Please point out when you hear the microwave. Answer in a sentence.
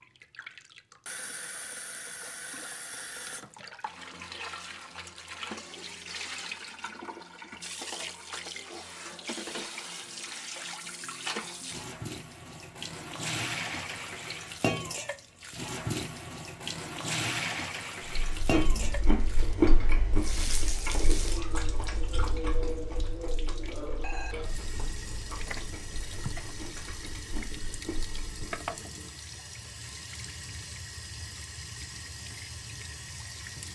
You can't hear the microwave here.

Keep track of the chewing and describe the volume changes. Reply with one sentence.
The loudness of the chewing goes down.